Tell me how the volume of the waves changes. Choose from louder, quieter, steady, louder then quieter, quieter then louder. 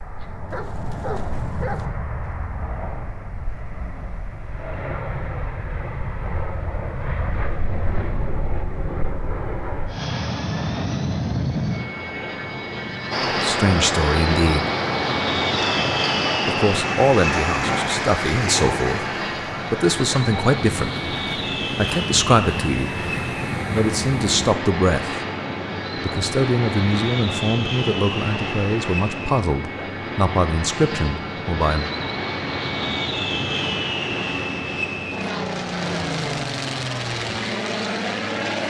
quieter.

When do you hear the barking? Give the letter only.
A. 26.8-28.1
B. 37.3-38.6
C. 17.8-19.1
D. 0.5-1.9
D.